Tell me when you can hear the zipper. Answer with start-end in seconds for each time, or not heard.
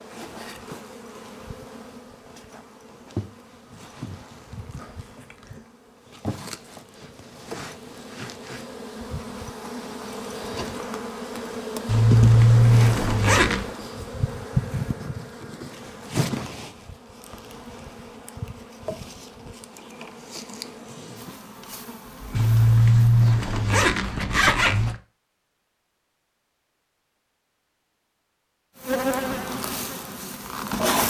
11.8-13.7, 22.4-24.9.